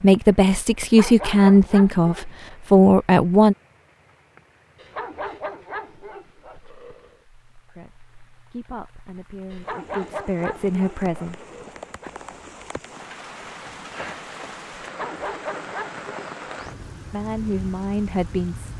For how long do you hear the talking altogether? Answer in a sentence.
The talking can be heard for 9 seconds in total.